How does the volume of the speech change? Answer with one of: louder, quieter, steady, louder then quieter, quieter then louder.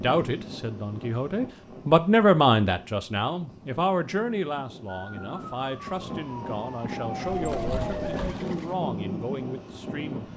quieter.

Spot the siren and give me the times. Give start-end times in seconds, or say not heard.
4.8-8.3.